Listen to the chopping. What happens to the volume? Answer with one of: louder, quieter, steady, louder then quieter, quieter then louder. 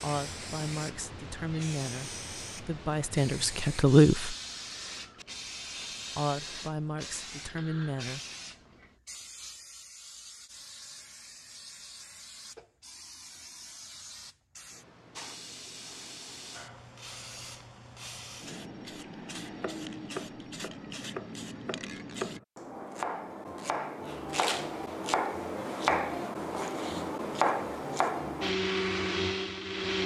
louder.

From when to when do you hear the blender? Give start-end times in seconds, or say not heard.
28.4-30.0.